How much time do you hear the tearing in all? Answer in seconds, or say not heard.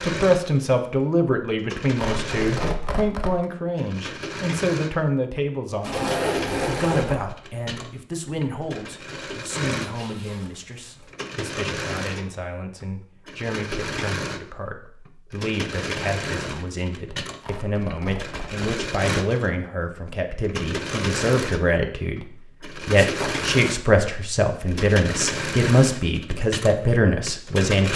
3 s.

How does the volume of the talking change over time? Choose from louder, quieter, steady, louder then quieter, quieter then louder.
quieter then louder.